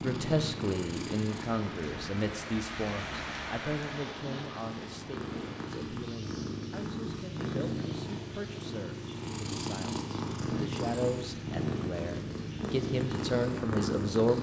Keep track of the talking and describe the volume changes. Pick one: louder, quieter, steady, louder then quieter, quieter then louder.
quieter then louder.